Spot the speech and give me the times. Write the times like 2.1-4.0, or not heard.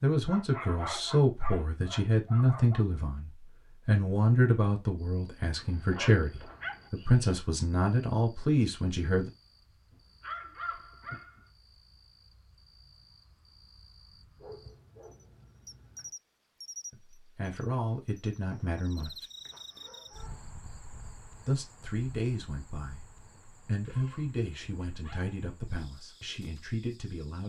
0.0-9.3, 16.9-19.2, 21.4-27.4.